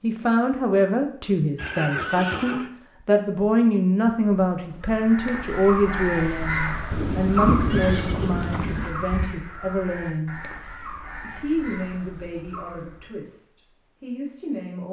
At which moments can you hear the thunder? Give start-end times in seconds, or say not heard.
6.9-8.9.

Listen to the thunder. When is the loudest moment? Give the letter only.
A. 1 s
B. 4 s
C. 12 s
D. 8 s
D.